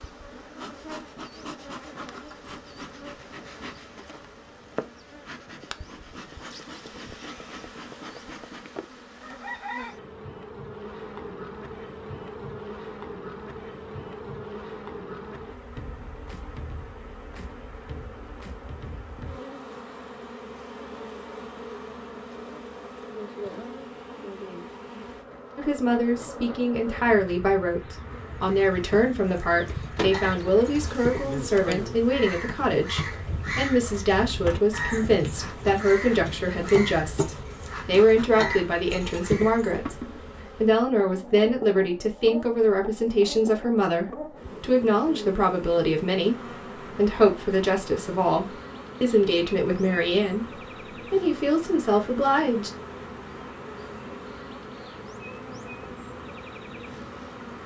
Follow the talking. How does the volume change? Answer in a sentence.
The loudness of the talking stays about the same.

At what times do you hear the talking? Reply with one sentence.
The talking can be heard from 25.6 to 52.7 s.